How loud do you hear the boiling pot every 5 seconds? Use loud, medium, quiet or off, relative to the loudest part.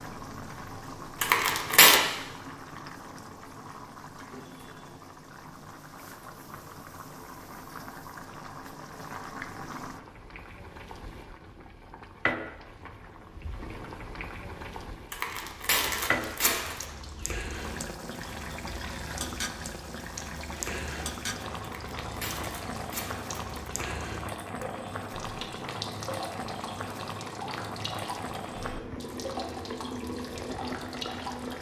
medium, medium, loud, loud, loud, loud, loud.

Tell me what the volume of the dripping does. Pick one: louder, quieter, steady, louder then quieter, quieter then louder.
steady.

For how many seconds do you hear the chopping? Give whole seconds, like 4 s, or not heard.
not heard.